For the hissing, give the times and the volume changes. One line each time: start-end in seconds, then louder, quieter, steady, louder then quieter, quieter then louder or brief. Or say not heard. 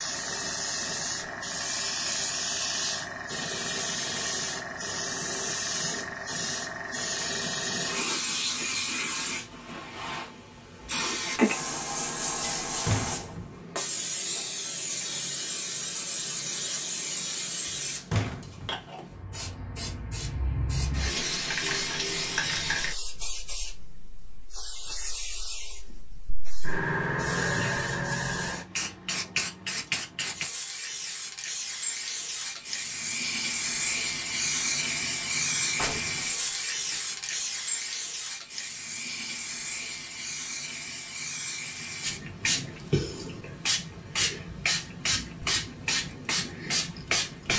0.0-47.5 steady.